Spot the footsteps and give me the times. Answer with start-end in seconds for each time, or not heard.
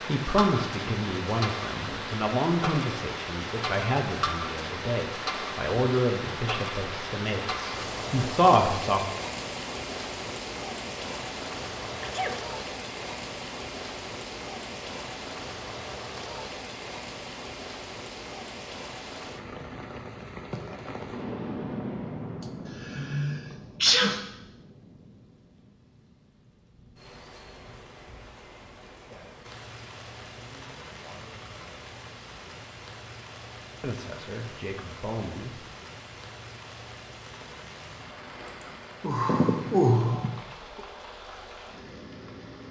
not heard.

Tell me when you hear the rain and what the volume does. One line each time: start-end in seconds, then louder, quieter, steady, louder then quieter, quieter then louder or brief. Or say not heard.
0.0-42.6 quieter.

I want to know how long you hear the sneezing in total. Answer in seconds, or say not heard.
4 s.